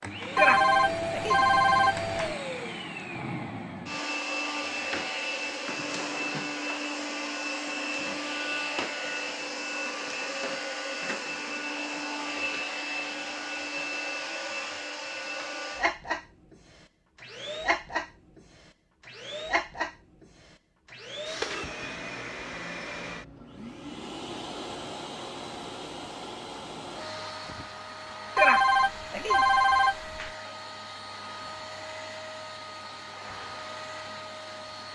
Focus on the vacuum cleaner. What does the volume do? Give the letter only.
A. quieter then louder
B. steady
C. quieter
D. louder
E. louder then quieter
C.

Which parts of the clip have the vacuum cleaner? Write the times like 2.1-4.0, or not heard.
0.0-34.9.